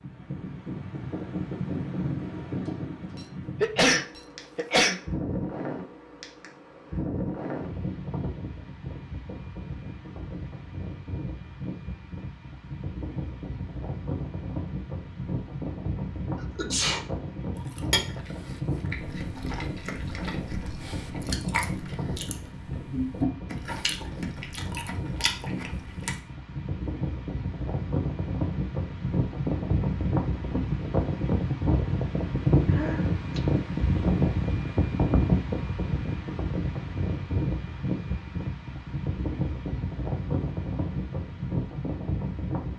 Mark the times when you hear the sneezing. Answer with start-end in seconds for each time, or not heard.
3.6-5.0, 16.6-17.1, 32.6-33.4.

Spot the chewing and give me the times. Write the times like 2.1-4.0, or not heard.
17.6-26.2.